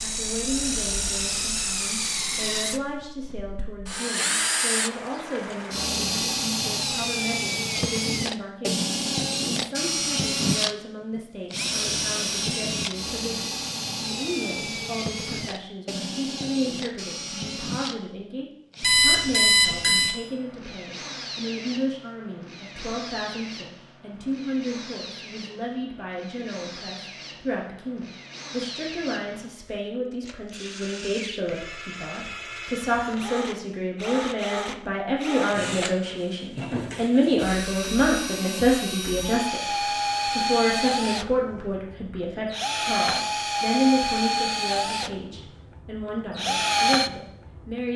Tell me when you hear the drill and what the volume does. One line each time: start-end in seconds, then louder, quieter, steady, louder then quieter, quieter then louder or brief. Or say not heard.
0.0-47.9 quieter then louder.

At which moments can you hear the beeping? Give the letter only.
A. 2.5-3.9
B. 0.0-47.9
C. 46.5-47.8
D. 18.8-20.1
D.